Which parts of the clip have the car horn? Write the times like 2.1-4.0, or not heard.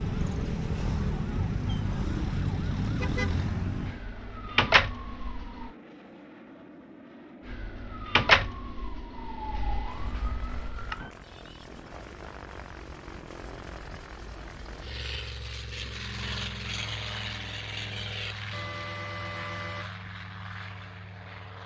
18.5-19.9.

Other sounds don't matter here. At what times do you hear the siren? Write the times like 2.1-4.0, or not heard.
0.0-5.7, 7.5-11.1.